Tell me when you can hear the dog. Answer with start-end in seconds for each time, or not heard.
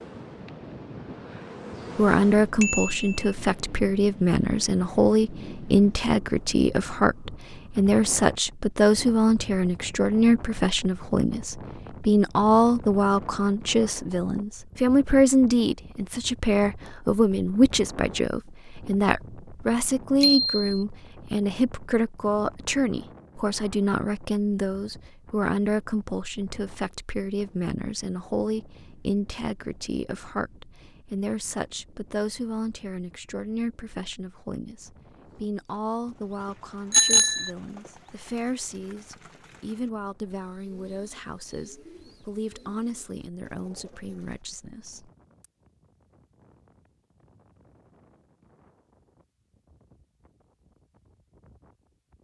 not heard.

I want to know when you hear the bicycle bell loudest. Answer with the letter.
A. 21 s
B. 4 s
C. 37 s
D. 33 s
C.